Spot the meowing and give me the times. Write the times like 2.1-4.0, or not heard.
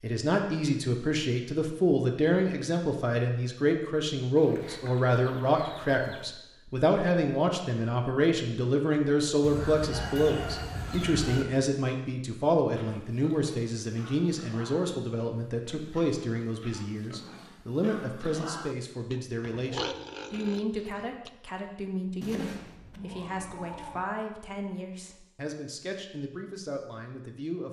22.2-24.1.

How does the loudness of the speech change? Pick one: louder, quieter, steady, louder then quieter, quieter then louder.
quieter.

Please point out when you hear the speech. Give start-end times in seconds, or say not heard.
0.0-27.6.